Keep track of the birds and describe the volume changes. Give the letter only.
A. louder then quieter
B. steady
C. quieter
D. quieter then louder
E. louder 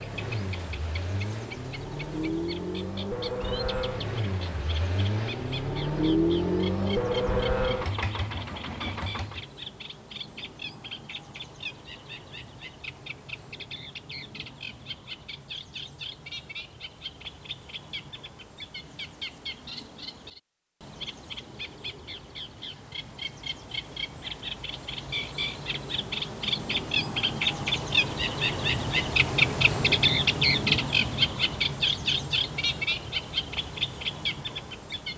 E.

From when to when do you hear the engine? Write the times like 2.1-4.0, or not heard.
0.0-9.4.